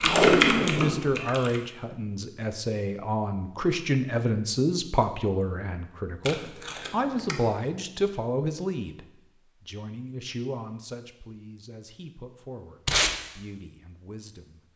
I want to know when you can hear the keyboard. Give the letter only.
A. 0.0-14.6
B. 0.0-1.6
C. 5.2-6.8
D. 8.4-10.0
B.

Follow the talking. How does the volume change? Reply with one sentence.
The volume of the talking goes down.